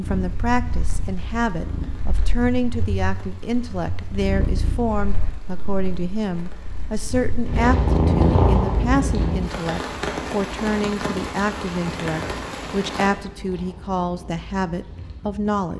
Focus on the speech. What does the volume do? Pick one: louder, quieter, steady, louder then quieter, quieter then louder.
steady.